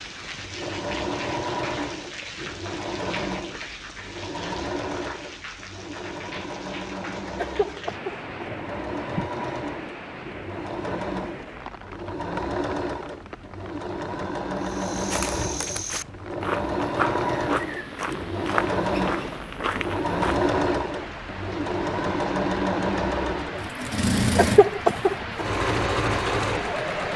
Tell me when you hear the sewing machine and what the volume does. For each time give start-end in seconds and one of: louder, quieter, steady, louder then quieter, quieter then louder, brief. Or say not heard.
0.0-27.1 louder.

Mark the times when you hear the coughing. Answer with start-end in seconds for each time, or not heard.
7.3-9.3, 24.4-25.4.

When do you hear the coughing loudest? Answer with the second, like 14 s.
25 s.